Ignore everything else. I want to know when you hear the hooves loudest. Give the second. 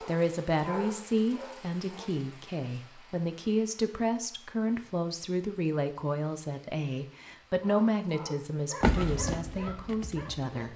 9 s.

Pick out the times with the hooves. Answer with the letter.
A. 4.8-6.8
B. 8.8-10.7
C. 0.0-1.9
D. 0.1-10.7
B.